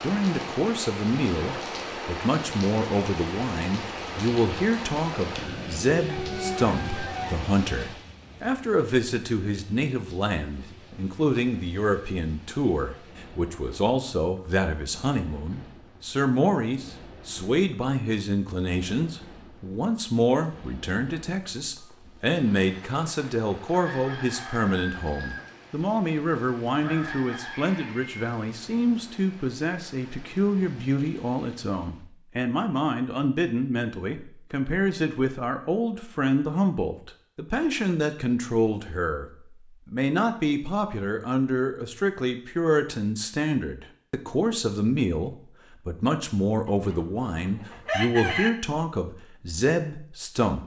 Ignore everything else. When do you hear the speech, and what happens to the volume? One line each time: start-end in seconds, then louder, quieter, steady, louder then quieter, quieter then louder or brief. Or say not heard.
0.0-50.6 steady.